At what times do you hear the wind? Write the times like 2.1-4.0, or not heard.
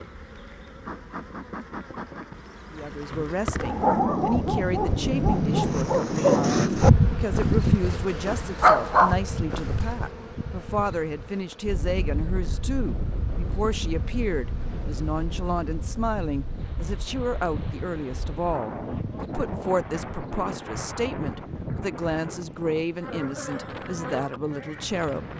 11.7-25.3.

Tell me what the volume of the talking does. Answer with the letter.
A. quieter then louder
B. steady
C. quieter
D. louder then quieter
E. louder
B.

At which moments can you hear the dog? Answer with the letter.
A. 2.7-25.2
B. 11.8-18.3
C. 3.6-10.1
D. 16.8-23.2
C.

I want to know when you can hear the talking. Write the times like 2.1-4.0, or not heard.
2.7-25.2.